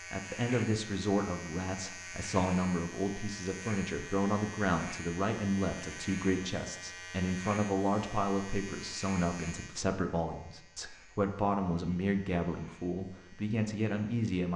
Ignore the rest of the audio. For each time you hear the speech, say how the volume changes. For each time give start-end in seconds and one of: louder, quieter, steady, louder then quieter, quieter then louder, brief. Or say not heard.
0.1-14.5 steady.